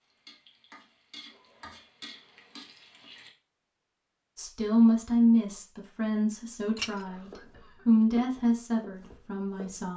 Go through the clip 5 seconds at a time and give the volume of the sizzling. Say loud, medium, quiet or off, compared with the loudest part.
loud, off.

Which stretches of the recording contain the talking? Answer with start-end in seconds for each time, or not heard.
4.3-9.9.